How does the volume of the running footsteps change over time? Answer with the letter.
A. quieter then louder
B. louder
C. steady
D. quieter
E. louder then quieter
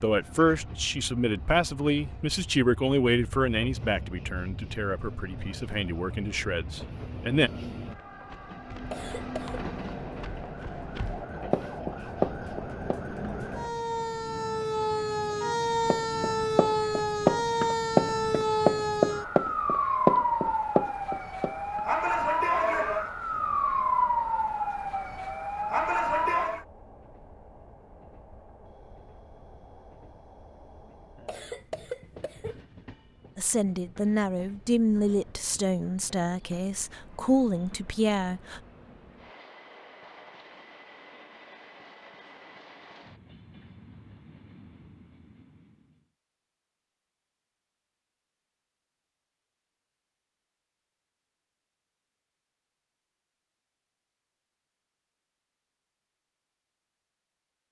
B.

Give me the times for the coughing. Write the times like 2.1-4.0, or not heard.
8.9-9.6, 31.2-32.6.